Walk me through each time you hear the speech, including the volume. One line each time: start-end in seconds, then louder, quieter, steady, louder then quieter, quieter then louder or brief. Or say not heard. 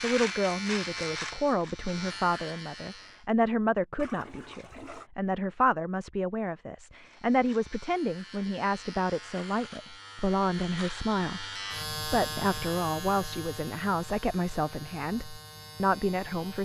0.0-16.6 steady.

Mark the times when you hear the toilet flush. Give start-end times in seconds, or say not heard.
4.0-5.1.